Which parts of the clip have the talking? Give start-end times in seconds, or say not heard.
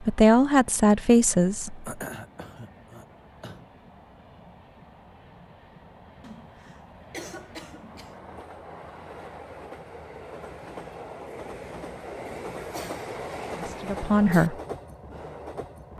0.1-1.8, 13.6-14.6.